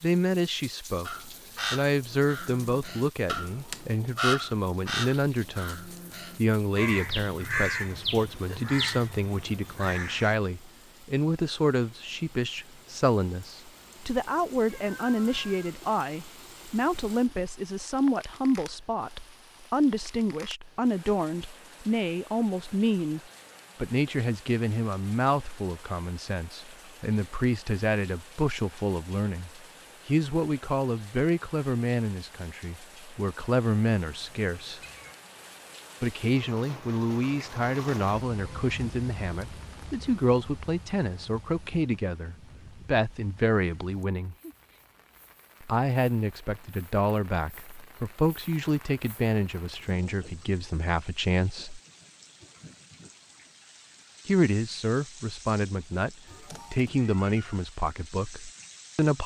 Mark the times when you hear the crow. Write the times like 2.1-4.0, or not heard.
1.1-10.3.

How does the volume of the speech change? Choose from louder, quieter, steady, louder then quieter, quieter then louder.
steady.